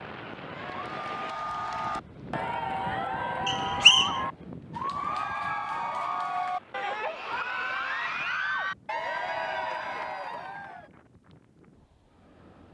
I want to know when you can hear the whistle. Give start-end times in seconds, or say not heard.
3.5-4.2.